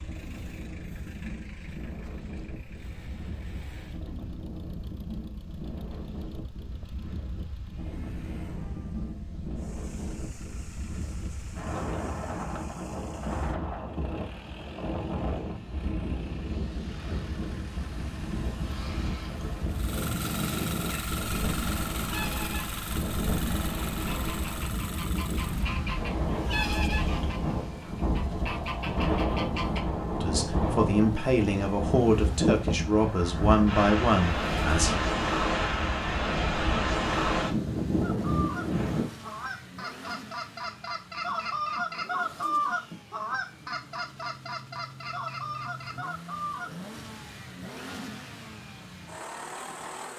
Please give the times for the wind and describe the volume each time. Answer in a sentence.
You can hear the wind from 0.0 to 39.1 s, getting louder.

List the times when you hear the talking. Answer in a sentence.
You can hear the talking from 30.2 to 35.0 s.